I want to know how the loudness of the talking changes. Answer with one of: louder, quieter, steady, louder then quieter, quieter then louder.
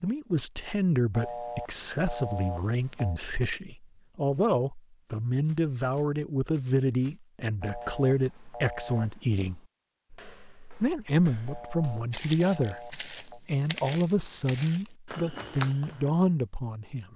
steady.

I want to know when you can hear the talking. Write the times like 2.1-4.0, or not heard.
0.0-9.6, 10.8-17.1.